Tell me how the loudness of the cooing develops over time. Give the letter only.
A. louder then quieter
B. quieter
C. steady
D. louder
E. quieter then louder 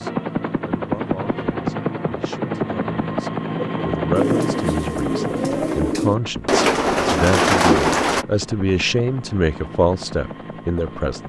D.